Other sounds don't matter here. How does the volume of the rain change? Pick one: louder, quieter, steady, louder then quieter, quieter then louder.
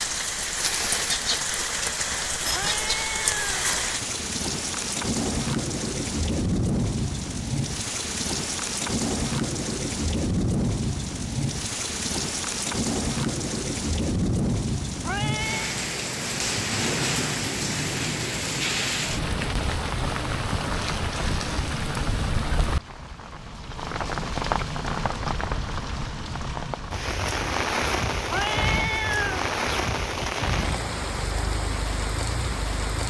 steady.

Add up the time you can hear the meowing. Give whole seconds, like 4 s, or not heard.
3 s.